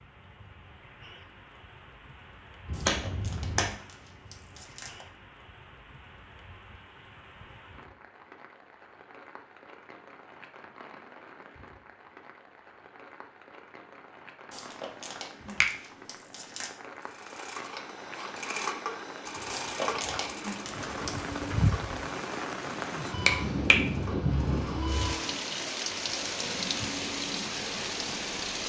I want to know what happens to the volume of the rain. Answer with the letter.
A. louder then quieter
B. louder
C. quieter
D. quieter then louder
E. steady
B.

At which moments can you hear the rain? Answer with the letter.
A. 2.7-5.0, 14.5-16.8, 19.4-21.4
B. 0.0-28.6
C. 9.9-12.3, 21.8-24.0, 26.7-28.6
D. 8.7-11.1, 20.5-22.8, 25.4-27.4
B.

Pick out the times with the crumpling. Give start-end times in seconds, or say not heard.
2.7-5.0, 14.5-16.8, 19.4-21.4.